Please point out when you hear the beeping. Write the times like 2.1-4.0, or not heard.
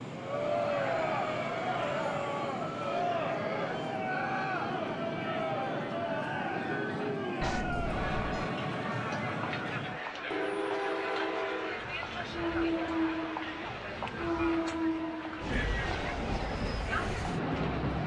7.4-8.5.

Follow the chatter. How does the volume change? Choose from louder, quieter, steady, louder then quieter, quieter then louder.
quieter.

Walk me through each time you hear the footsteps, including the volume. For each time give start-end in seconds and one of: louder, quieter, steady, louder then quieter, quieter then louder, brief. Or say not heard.
not heard.